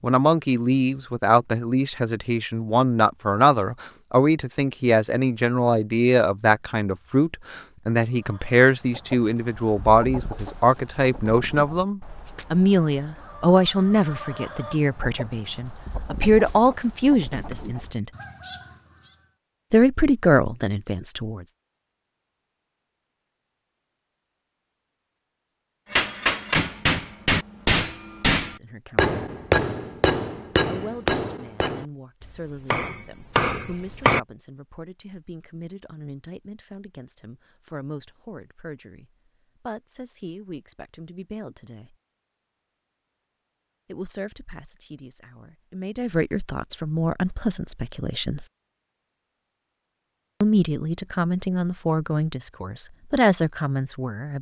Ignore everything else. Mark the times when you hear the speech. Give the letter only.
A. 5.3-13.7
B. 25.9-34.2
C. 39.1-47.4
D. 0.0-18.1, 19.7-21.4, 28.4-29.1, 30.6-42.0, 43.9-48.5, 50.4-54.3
D.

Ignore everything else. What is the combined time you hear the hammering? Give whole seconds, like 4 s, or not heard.
8 s.